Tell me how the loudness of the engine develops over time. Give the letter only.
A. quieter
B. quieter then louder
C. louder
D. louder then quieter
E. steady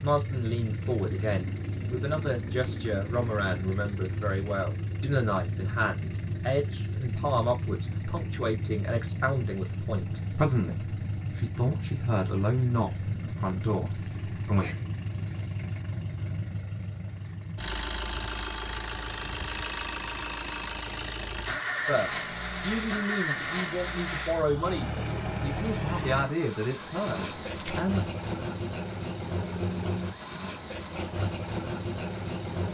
E.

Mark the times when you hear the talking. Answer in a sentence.
You can hear the talking from 0.0 to 14.7 s and from 21.9 to 28.1 s.